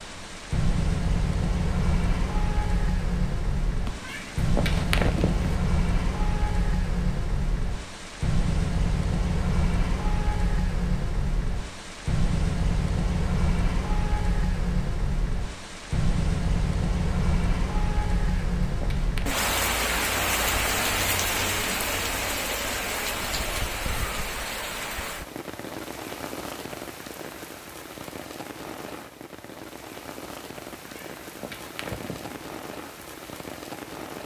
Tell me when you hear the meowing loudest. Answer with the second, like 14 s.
5 s.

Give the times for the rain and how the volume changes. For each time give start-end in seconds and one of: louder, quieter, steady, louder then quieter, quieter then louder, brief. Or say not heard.
0.0-34.2 quieter.